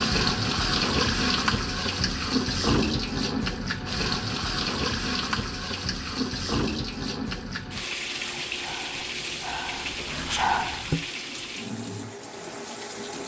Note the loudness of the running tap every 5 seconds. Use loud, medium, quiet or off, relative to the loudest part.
loud, medium, medium.